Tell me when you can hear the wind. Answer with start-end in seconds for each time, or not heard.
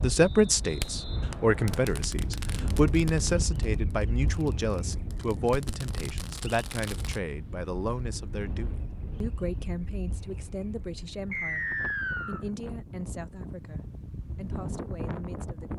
0.0-15.7.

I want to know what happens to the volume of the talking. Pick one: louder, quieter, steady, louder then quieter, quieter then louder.
quieter.